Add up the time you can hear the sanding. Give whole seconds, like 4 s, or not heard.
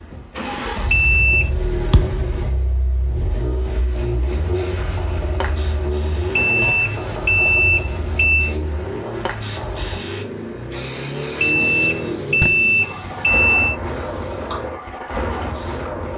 not heard.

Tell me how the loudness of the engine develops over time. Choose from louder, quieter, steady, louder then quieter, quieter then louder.
steady.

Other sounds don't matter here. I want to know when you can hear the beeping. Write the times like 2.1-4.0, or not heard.
0.8-1.5, 6.3-8.6, 11.4-13.8.